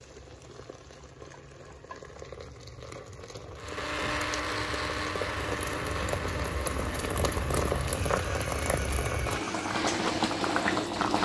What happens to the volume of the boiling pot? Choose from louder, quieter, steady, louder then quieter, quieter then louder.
louder.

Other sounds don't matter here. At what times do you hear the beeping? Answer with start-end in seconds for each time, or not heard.
not heard.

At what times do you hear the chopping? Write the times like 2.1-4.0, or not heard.
not heard.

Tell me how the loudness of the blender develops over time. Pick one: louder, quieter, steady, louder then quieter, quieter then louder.
quieter.